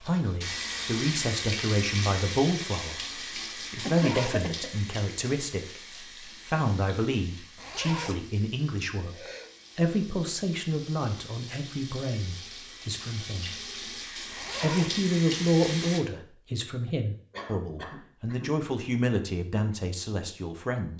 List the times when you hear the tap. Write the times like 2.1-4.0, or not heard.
0.0-16.0.